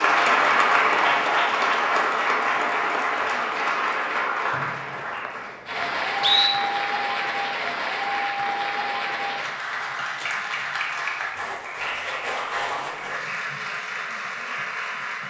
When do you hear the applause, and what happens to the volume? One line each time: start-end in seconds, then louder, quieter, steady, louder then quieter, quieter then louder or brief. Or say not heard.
0.0-15.2 quieter.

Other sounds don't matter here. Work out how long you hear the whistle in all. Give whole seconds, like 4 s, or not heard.
2 s.